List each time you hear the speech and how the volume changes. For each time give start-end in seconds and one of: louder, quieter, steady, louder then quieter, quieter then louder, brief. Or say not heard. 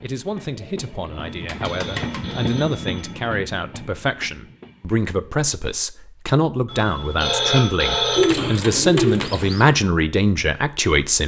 0.0-11.2 louder.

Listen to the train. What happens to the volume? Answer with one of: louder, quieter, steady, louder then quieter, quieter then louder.
louder then quieter.